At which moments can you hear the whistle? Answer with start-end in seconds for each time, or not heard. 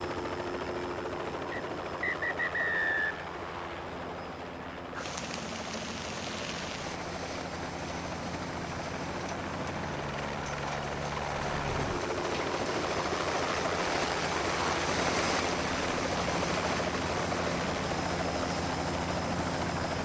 1.5-3.2.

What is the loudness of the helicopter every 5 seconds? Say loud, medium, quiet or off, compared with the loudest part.
medium, medium, loud, loud.